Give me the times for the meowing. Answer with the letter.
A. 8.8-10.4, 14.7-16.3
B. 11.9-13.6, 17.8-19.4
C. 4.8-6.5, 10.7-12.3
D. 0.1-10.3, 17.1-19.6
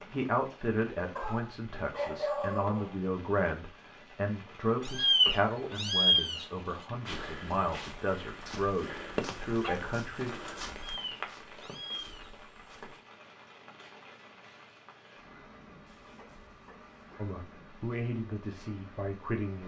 C.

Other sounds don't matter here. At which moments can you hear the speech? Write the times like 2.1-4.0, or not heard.
0.1-10.3, 17.1-19.6.